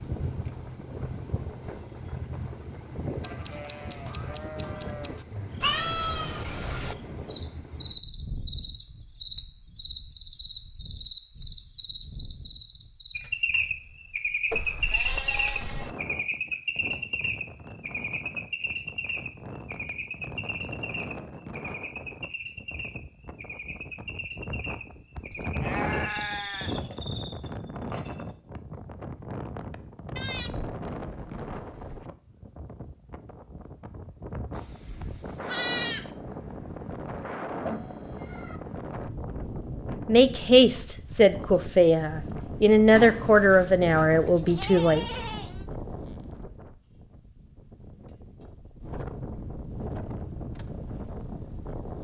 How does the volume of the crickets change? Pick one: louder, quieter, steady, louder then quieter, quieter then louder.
louder then quieter.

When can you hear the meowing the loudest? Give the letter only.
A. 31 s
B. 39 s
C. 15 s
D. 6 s
D.